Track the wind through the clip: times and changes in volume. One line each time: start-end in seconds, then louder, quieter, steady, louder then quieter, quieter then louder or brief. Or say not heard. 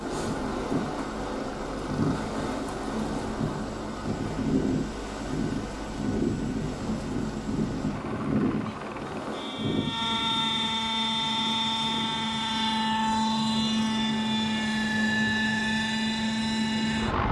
0.0-17.1 quieter.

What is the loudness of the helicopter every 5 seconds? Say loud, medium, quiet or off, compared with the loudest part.
quiet, quiet, loud, loud.